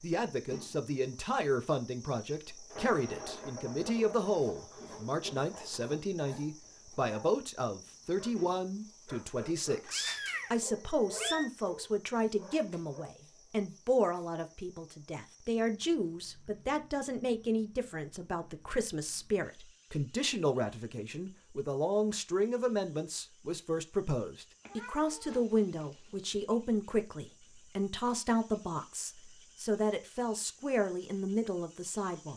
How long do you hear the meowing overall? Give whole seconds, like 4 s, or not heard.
3 s.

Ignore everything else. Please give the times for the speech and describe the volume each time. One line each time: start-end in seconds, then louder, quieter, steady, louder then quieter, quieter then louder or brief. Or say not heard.
0.0-32.3 steady.